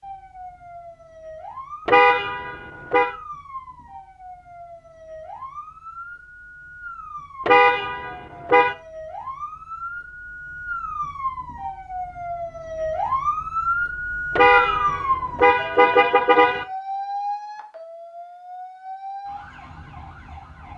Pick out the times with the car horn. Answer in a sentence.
The car horn can be heard from 1.9 to 3.1 s, from 7.5 to 8.8 s and from 14.3 to 16.6 s.